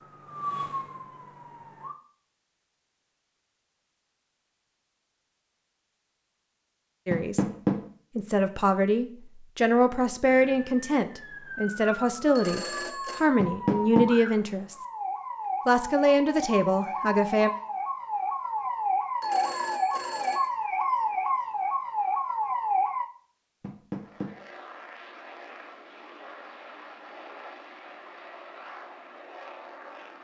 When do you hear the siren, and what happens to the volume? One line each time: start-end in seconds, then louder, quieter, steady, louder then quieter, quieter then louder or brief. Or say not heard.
0.0-1.9 brief
10.2-23.1 louder.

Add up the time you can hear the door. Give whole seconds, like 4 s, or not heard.
2 s.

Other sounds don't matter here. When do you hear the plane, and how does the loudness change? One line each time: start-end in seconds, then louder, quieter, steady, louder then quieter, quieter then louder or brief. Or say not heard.
23.9-30.1 steady.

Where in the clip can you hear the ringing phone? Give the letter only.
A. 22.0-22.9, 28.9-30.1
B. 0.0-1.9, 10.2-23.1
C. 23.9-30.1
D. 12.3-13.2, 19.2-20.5
D.